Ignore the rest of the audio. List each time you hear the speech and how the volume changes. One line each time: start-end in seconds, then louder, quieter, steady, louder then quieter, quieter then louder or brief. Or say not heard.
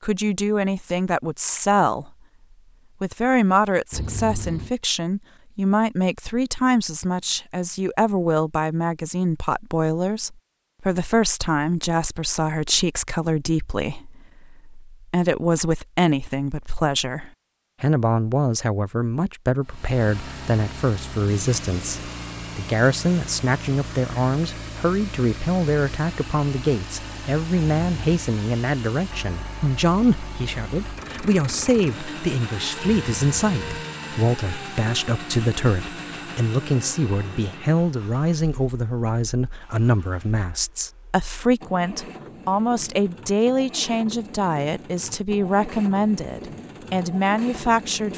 0.0-2.1 brief
3.0-48.1 steady.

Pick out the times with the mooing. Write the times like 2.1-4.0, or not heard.
not heard.